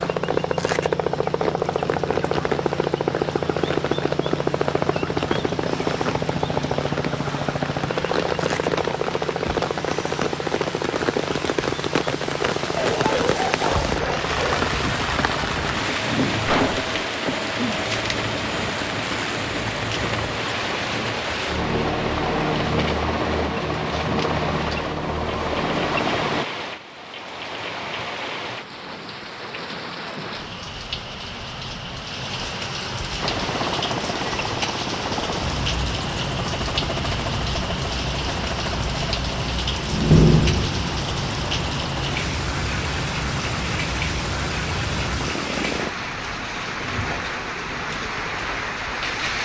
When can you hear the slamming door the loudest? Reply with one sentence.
The volume of the slamming door peaks at 40 seconds.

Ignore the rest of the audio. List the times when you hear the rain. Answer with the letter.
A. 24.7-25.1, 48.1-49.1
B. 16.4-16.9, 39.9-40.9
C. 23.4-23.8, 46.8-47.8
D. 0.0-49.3
D.